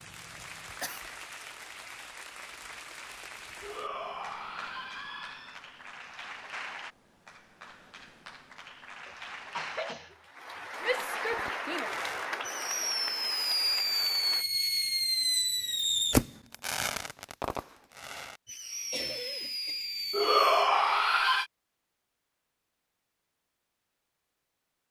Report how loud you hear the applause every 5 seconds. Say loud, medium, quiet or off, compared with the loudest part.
medium, medium, loud, off, off.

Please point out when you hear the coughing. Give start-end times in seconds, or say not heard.
0.3-1.1, 9.1-11.1, 18.9-19.8.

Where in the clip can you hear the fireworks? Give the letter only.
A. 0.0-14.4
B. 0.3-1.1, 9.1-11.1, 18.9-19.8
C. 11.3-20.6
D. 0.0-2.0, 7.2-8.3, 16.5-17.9
C.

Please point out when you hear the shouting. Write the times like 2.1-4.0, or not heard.
3.6-5.6, 10.8-11.9, 20.1-21.4.